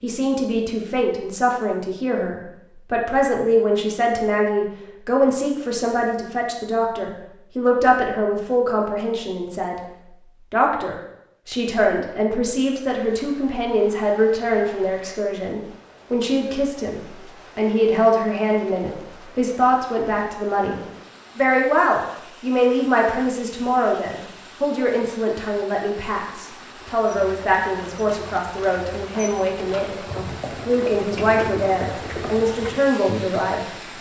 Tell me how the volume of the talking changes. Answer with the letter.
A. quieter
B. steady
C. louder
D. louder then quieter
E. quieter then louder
B.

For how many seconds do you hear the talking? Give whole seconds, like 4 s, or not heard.
33 s.